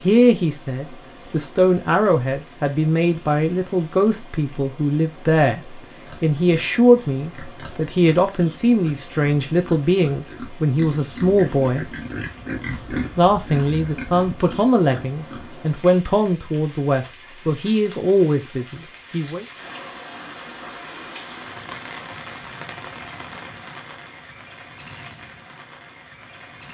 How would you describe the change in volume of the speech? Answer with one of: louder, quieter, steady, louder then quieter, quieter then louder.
steady.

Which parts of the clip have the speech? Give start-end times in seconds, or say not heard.
0.0-11.8, 13.2-19.4.